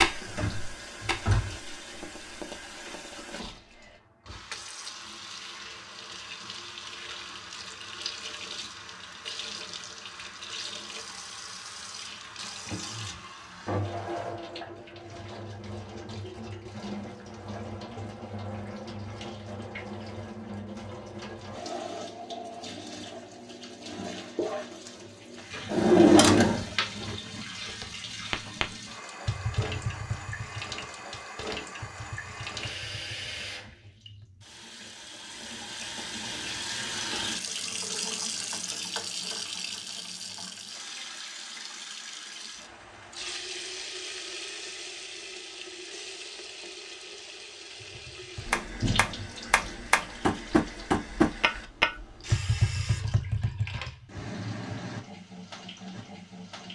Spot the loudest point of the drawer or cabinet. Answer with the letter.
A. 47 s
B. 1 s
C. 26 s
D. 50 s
C.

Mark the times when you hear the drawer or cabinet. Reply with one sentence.
The drawer or cabinet can be heard from 0.2 to 1.6 s, from 25.7 to 27.1 s and from 48.8 to 49.3 s.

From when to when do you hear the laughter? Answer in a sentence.
The laughter can't be heard in this clip.